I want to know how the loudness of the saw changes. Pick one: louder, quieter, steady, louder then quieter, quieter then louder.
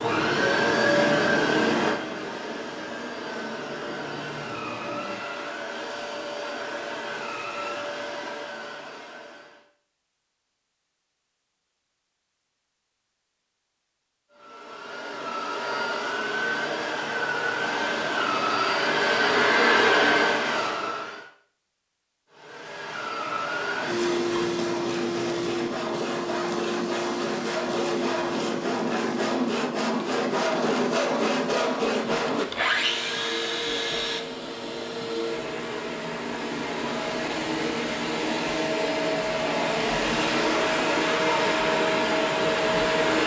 louder.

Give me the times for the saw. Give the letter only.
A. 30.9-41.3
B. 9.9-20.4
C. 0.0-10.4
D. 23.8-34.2
D.